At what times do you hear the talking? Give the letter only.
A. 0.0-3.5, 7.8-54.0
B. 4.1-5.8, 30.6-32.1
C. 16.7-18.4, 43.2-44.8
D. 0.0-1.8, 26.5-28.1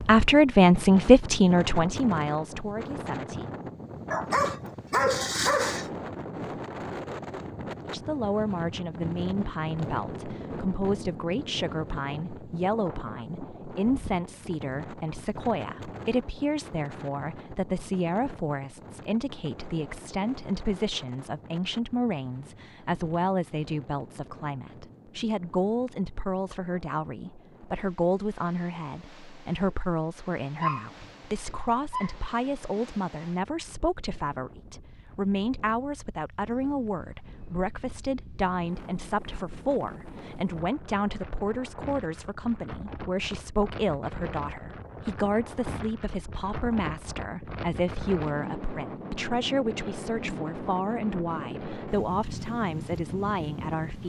A.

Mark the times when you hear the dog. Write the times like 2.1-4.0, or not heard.
4.1-5.8, 30.6-32.1.